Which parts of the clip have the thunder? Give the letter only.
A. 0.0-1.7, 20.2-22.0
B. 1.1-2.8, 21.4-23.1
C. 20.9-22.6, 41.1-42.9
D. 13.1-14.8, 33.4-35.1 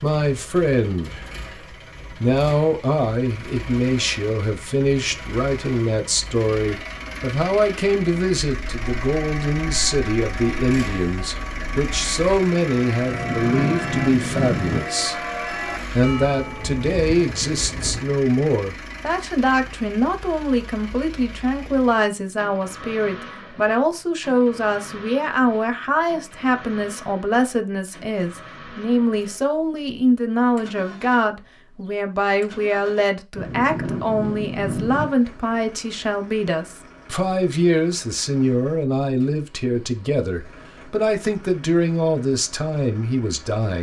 D.